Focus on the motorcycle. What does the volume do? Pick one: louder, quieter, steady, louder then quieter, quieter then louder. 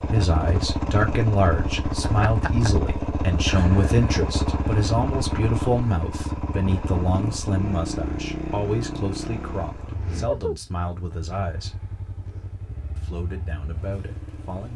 quieter.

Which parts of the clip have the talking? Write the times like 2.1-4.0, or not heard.
0.0-11.8, 12.9-14.7.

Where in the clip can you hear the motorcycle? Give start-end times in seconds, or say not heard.
0.0-14.7.